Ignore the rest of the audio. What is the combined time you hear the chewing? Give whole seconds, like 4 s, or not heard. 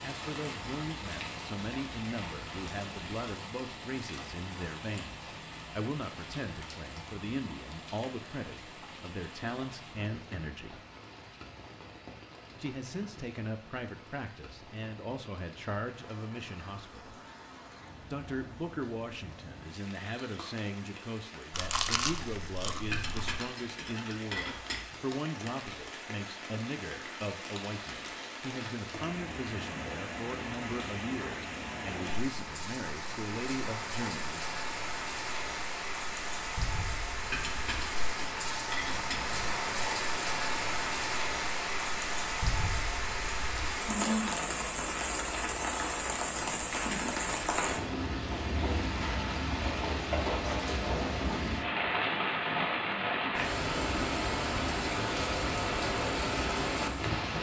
2 s.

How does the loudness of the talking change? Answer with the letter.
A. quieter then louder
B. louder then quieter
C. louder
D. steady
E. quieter
D.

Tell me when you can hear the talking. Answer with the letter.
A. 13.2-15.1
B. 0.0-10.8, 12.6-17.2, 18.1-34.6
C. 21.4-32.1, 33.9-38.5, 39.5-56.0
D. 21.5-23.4
B.